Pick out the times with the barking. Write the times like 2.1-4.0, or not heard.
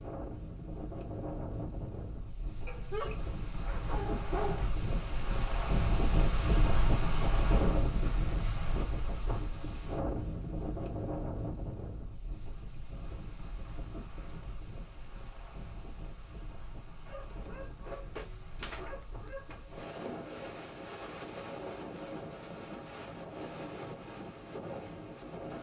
2.6-4.7, 17.1-19.6.